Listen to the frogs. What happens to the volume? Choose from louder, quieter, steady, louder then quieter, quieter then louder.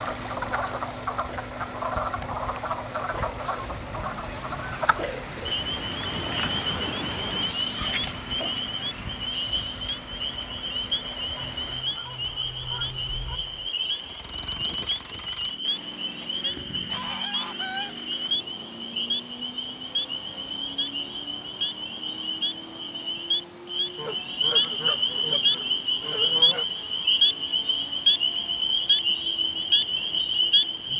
louder.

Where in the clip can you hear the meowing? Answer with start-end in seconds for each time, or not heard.
7.8-8.6.